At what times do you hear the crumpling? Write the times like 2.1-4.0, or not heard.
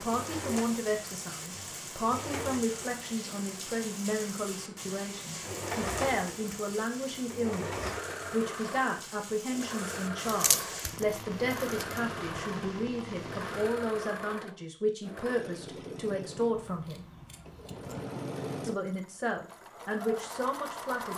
10.2-11.9.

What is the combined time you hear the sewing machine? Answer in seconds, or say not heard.
21 s.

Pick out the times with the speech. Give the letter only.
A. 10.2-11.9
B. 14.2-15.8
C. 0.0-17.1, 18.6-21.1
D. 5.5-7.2
C.